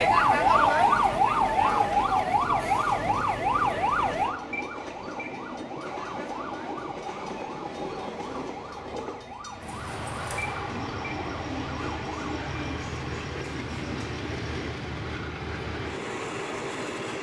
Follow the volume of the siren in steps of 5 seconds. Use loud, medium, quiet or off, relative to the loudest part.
loud, quiet, quiet, off.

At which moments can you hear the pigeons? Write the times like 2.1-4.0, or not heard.
9.6-14.7.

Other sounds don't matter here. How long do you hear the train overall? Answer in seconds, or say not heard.
17 s.